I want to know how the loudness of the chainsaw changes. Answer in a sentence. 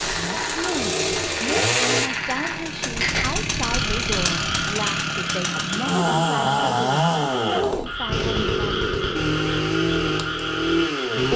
The loudness of the chainsaw stays about the same.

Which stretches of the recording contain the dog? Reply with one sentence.
You can't hear the dog here.